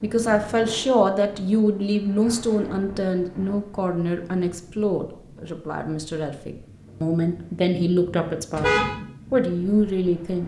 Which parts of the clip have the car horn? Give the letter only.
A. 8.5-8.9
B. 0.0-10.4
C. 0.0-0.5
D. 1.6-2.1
A.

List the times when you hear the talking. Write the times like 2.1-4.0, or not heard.
0.0-10.4.